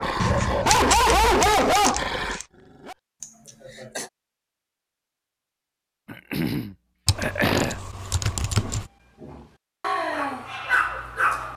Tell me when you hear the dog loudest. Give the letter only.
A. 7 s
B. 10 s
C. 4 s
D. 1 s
D.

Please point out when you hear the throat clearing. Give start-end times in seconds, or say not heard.
3.2-4.1, 6.0-7.8.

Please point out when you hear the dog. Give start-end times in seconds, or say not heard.
0.0-3.4, 8.6-11.5.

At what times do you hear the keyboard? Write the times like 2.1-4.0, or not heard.
0.1-2.5, 7.0-8.9.